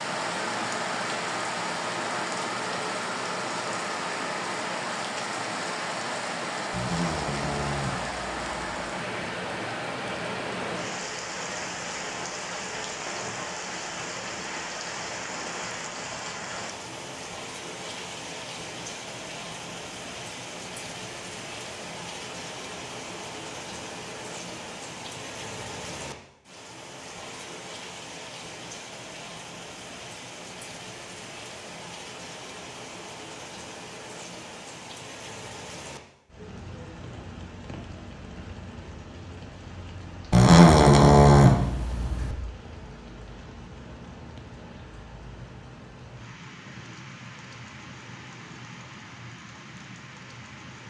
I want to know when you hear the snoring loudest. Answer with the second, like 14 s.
41 s.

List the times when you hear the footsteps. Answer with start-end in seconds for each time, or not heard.
not heard.